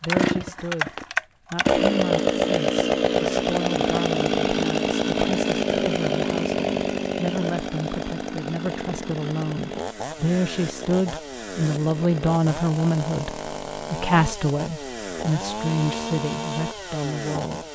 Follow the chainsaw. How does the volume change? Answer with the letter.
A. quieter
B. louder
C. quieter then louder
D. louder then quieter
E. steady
A.